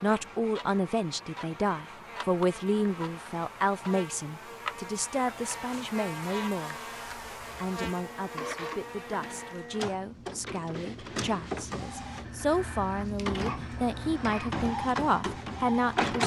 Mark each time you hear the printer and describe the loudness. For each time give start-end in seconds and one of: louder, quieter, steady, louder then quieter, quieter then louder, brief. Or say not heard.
0.0-16.2 louder.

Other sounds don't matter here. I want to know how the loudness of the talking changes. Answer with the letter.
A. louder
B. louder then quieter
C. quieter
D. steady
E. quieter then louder
E.